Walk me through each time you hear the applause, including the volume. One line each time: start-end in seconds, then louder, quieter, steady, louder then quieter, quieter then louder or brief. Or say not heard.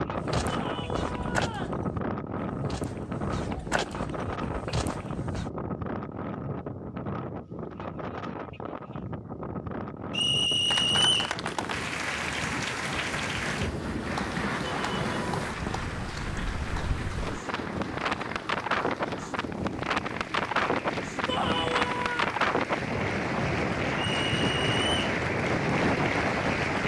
10.5-26.8 quieter then louder.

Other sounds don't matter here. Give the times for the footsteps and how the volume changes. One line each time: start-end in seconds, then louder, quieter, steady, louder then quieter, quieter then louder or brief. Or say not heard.
0.1-5.5 quieter then louder.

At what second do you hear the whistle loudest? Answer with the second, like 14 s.
11 s.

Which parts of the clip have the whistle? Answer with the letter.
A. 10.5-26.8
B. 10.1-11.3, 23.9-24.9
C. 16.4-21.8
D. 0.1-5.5
B.